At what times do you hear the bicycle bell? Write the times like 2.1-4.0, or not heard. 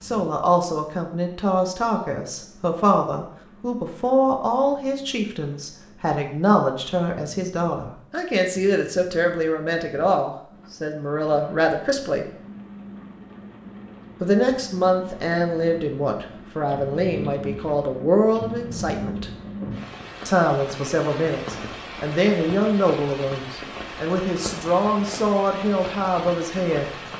not heard.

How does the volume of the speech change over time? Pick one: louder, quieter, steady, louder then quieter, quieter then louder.
steady.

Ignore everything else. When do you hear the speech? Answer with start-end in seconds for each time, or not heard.
0.0-12.2, 14.2-19.3, 20.2-26.9.